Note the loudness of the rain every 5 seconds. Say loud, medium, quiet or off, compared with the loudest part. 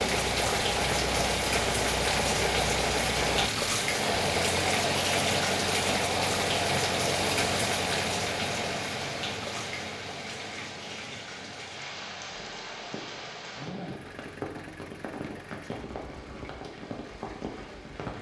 loud, loud, medium, medium.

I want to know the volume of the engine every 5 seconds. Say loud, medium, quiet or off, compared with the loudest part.
loud, loud, quiet, quiet.